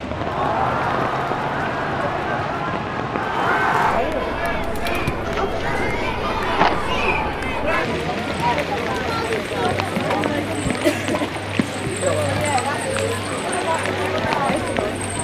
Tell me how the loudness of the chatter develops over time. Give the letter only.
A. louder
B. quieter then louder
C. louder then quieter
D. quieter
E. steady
E.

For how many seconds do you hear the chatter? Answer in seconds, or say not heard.
15 s.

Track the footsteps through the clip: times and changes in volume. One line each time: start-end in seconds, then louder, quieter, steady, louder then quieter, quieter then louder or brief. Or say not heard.
not heard.